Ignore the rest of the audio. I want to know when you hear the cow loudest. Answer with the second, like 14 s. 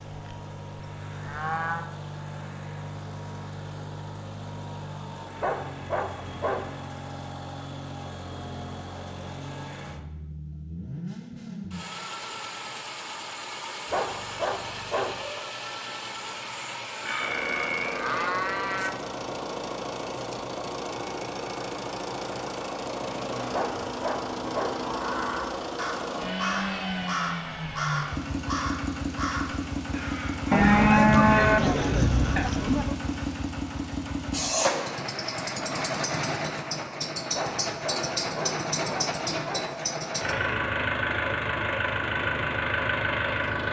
31 s.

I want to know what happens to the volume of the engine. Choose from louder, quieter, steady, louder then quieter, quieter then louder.
louder.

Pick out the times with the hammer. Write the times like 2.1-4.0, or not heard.
not heard.